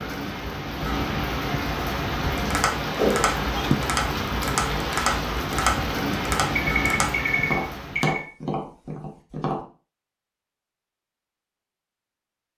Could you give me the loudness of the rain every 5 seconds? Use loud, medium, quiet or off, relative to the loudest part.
loud, loud, off.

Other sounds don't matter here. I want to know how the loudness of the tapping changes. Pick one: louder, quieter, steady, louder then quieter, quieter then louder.
steady.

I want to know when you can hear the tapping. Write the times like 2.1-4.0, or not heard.
2.4-9.7.